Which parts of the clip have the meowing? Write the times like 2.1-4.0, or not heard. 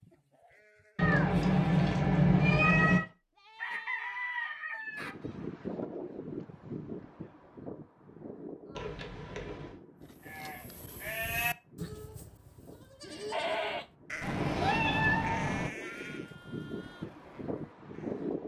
0.9-3.0, 8.8-9.8, 14.2-15.7.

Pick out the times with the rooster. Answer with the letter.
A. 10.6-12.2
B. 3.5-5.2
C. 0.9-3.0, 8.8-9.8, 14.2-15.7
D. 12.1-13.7
B.